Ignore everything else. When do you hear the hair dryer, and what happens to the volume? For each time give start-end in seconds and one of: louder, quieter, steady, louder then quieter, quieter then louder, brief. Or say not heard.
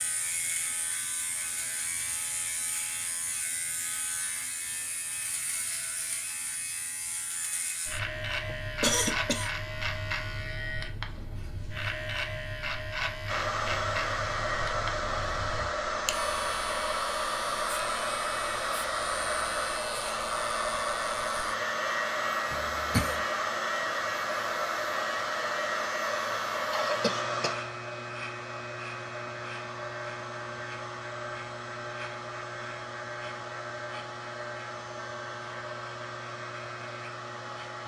13.2-37.8 quieter.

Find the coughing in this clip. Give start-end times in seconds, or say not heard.
8.4-9.5, 22.5-23.2, 26.7-27.6.